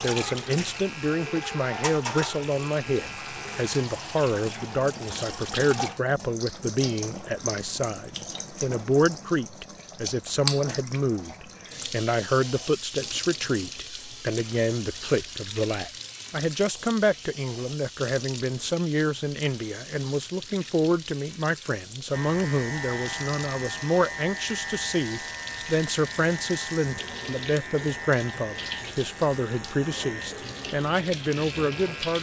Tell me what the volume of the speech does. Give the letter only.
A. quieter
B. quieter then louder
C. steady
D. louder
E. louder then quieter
C.